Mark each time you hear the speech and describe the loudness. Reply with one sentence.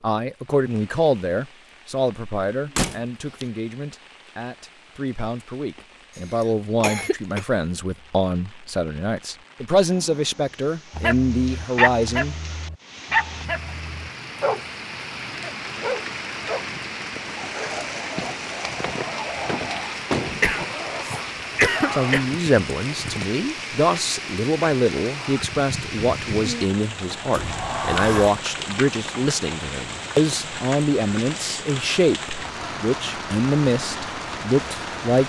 You can hear the speech from 0.0 to 12.3 s, getting quieter then louder; and from 21.9 to 35.2 s, at a steady volume.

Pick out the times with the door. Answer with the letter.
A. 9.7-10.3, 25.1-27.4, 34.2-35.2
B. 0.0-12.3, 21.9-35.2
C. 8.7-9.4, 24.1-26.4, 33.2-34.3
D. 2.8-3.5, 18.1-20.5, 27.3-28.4
D.